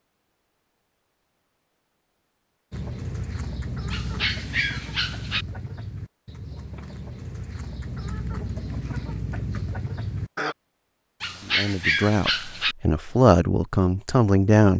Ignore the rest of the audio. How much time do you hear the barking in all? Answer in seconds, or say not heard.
3 s.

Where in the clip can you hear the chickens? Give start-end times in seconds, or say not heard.
2.7-10.6.